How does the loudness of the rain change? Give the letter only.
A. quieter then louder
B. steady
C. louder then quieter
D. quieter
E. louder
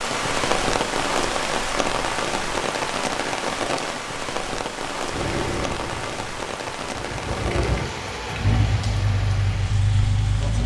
D.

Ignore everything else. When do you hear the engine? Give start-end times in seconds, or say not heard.
5.1-10.6.